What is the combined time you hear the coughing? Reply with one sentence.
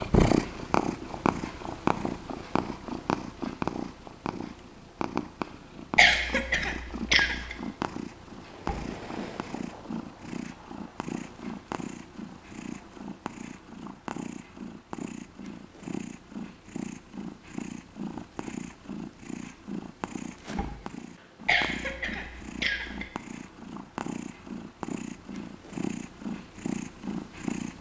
The coughing can be heard for 3 seconds in total.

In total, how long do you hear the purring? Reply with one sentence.
You can hear the purring for 28 seconds altogether.